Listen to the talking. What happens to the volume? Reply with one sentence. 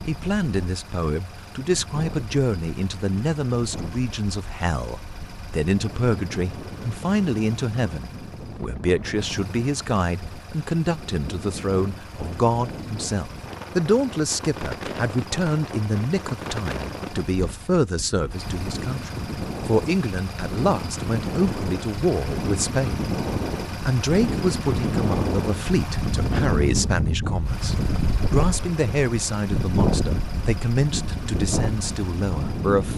The volume of the talking stays about the same.